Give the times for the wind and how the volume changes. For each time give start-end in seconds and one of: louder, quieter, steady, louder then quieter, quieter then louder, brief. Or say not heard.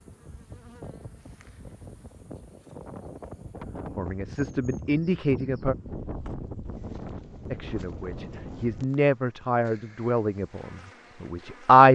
0.0-8.8 louder.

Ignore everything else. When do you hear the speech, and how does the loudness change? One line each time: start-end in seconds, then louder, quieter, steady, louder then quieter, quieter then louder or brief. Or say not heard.
4.0-5.8 brief
7.5-11.8 louder then quieter.